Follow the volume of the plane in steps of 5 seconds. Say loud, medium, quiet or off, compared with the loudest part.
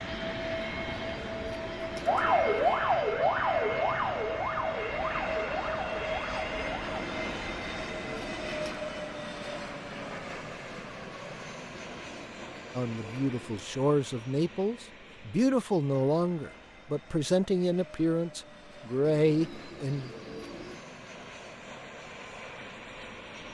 loud, loud, medium, quiet, medium.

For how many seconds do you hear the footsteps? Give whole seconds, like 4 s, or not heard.
not heard.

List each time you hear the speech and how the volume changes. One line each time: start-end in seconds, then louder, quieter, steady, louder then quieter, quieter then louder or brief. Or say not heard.
12.8-20.1 steady.